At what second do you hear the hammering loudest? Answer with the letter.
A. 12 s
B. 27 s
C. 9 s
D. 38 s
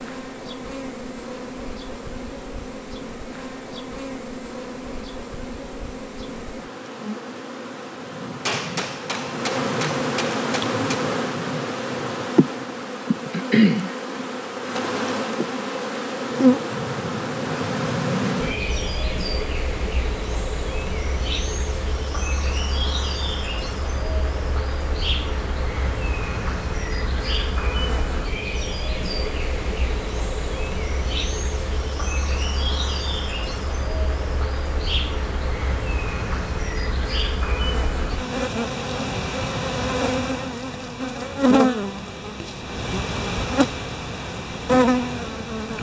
C.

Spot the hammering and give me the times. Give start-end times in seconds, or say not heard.
8.4-11.1.